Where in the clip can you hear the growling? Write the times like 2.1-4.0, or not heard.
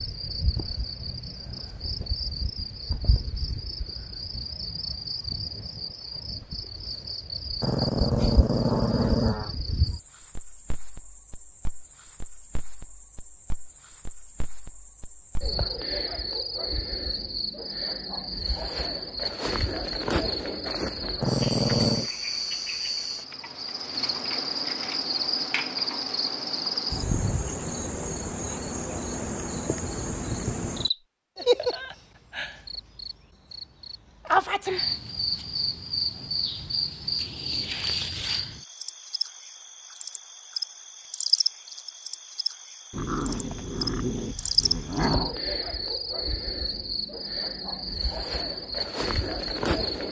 7.6-9.6, 21.2-22.1, 42.9-45.4.